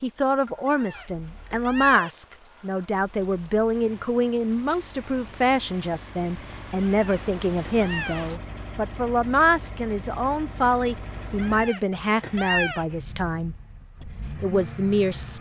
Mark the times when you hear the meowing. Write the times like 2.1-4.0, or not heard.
0.7-2.1, 6.8-8.2, 11.3-12.8.